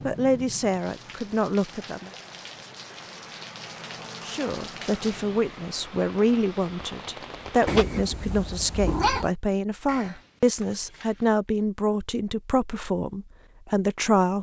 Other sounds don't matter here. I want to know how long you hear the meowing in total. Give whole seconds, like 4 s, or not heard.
2 s.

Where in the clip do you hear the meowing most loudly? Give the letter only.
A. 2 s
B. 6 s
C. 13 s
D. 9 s
D.